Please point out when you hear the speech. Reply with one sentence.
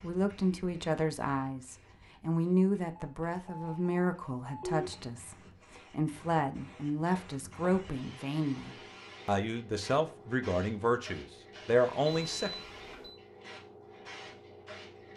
You can hear the speech from 0.0 to 12.5 s.